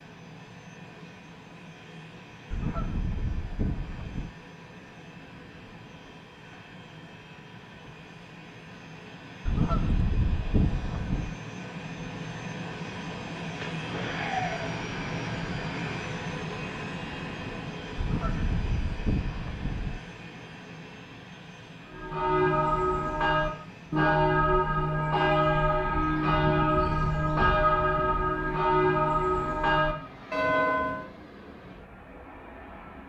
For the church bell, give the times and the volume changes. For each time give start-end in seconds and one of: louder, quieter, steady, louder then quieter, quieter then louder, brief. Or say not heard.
21.9-31.1 steady.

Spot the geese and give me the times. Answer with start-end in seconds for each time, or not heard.
2.5-4.3, 9.4-11.3, 17.9-20.0, 26.3-28.2.